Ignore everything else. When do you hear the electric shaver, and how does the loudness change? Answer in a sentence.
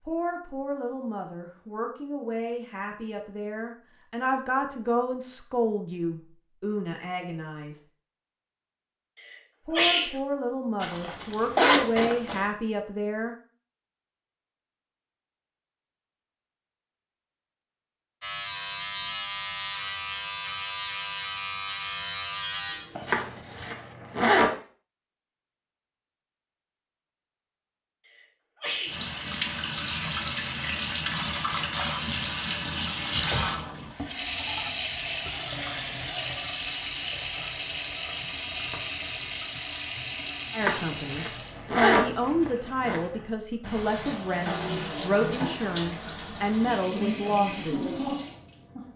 The electric shaver can be heard from 18.2 to 23.1 s, at a steady volume.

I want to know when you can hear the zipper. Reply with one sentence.
The zipper can be heard from 10.8 to 12.4 s, from 23.1 to 24.5 s and from 40.6 to 43.0 s.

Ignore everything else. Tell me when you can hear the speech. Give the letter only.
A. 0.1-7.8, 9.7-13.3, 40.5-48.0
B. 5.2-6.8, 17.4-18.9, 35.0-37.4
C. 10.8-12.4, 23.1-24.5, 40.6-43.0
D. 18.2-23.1
A.